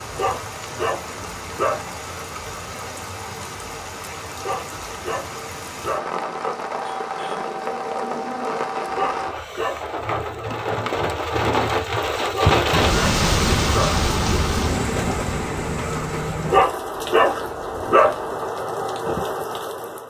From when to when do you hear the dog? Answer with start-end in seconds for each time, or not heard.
0.1-1.9, 4.3-6.1, 8.9-10.4, 12.2-14.0, 16.4-18.1.